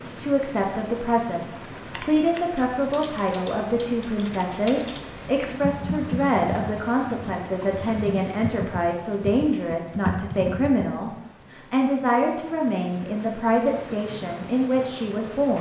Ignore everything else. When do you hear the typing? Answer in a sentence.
You can hear the typing from 1.8 to 11.2 s.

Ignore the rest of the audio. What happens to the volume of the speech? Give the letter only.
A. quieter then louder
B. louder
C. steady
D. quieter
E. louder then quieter
C.